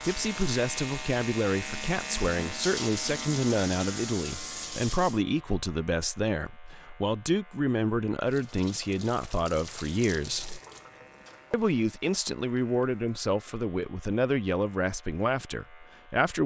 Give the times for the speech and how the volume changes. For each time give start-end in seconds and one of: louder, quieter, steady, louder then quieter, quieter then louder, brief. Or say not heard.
0.1-10.6 steady
11.5-16.4 steady.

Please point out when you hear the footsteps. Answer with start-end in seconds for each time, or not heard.
not heard.